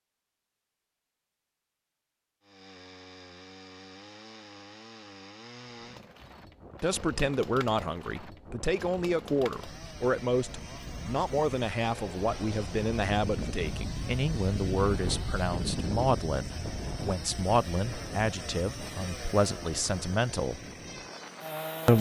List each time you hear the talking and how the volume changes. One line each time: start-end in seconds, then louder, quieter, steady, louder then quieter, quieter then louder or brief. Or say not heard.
6.8-20.6 steady.